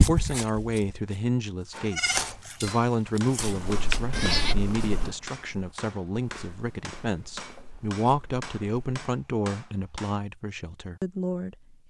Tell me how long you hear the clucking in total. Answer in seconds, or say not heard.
not heard.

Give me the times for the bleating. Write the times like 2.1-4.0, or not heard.
0.0-4.5.